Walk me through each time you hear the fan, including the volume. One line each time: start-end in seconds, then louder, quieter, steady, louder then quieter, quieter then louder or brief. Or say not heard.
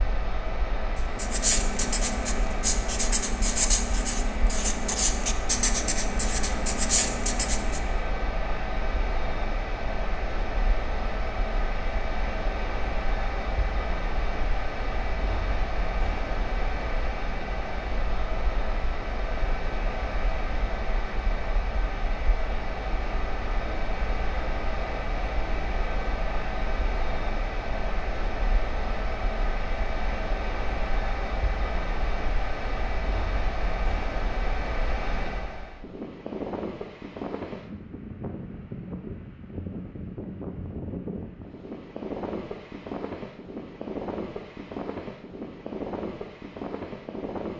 0.0-47.5 steady.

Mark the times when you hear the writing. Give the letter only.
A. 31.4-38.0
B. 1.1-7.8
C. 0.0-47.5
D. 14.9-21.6
B.